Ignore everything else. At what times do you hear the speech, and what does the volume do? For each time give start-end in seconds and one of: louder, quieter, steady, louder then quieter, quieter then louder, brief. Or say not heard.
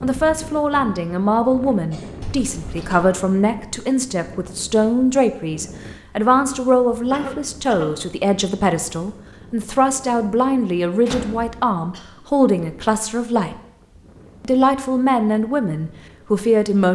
0.0-13.6 steady
14.4-16.9 brief.